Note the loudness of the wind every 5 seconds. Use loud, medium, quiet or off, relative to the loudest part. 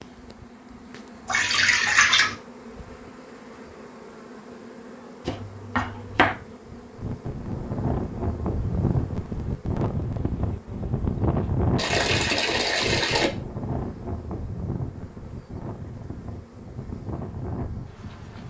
off, loud, loud, medium.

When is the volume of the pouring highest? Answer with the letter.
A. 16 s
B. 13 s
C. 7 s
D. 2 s
D.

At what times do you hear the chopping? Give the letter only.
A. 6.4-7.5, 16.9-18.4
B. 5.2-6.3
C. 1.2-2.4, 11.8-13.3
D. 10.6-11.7
B.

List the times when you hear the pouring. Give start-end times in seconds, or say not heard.
1.2-2.4, 11.8-13.3.